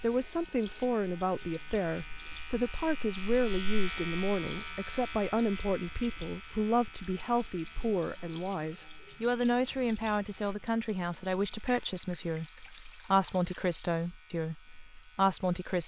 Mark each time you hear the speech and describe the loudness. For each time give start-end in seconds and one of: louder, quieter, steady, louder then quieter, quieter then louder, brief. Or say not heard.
0.0-15.8 steady.